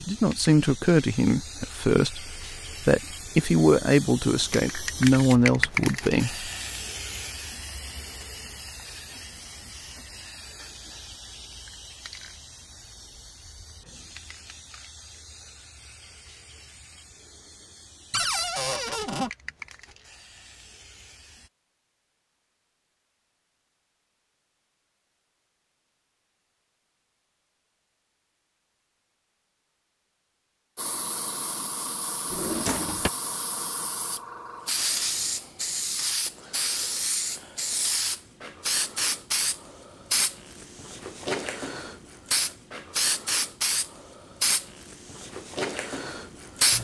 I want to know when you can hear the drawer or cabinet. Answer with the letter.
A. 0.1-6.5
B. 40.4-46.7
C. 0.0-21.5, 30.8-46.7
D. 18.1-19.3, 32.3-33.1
D.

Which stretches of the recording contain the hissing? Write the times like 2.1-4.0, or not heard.
0.0-21.5, 30.8-46.7.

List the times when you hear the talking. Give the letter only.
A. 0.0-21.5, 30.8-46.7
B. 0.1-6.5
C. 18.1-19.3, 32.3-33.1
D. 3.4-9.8
B.